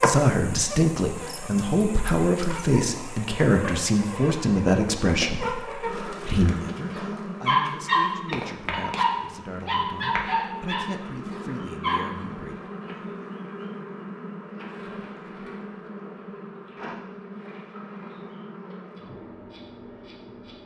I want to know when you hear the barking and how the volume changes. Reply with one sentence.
The barking can be heard from 7.0 to 12.2 s, getting quieter.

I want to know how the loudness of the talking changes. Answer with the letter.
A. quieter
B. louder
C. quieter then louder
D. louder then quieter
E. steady
A.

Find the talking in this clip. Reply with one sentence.
The talking can be heard from 0.0 to 12.6 s.